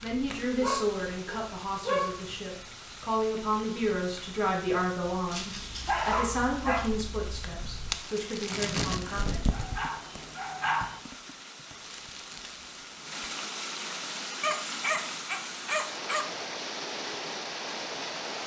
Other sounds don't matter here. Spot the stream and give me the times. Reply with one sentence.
The stream can be heard from 0.0 to 18.4 s.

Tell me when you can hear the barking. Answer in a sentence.
The barking can be heard from 0.6 to 2.6 s, from 5.3 to 6.9 s, from 9.5 to 11.0 s and from 14.4 to 16.2 s.